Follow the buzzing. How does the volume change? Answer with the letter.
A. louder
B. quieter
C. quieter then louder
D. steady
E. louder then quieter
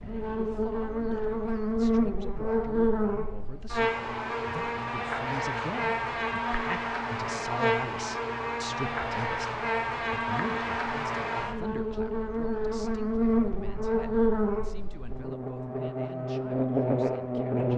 D.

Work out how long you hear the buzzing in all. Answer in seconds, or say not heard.
18 s.